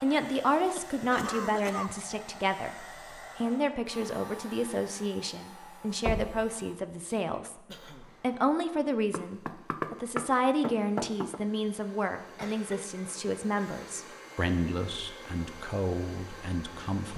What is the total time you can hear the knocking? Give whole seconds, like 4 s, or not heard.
3 s.